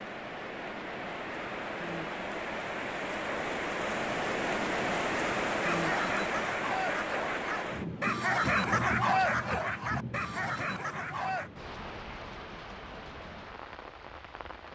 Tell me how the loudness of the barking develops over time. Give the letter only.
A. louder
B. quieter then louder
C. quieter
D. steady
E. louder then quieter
E.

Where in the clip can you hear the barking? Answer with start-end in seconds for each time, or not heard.
5.6-11.5.